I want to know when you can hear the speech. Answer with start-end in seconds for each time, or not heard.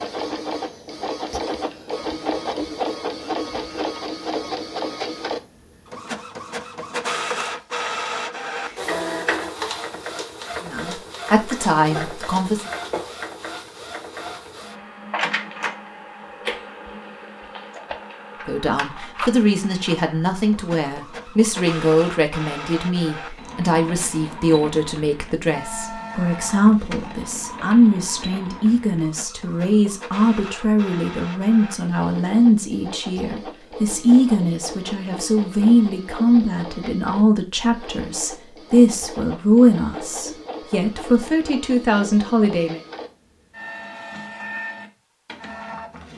10.6-12.7, 18.4-42.8.